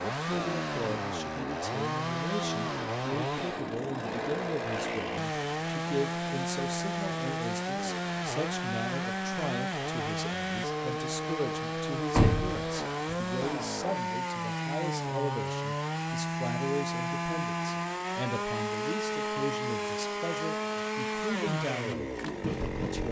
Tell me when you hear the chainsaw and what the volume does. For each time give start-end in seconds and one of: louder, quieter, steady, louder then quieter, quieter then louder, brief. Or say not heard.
0.0-23.0 steady.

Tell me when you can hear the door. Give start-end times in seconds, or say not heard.
12.1-13.2.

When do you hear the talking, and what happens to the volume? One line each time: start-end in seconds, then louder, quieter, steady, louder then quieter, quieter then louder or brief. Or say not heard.
0.0-23.0 steady.